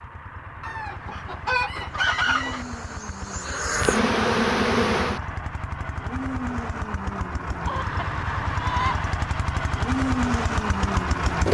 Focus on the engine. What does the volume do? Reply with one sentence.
The volume of the engine goes up.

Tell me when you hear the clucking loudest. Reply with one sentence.
The loudest moment of the clucking is at 2 seconds.